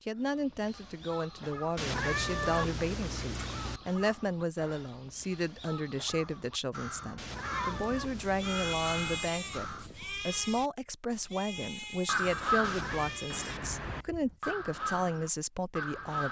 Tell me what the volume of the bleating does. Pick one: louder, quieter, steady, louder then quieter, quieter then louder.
quieter.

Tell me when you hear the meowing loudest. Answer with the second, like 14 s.
2 s.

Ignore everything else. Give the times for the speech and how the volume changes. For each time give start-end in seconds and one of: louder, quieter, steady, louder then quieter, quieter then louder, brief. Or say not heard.
0.1-16.2 steady.